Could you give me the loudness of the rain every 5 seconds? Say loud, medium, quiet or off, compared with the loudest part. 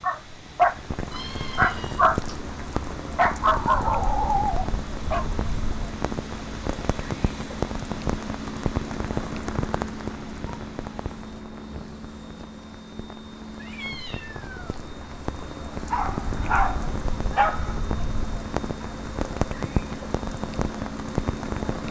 loud, loud, medium, loud, loud.